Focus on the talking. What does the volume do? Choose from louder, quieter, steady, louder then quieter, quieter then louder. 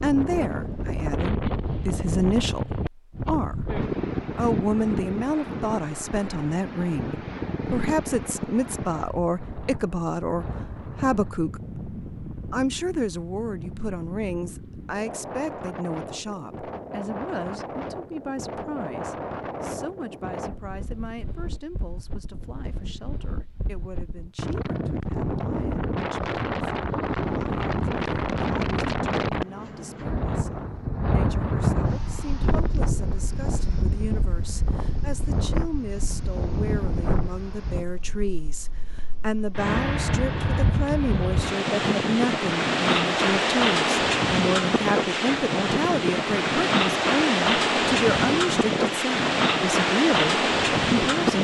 quieter then louder.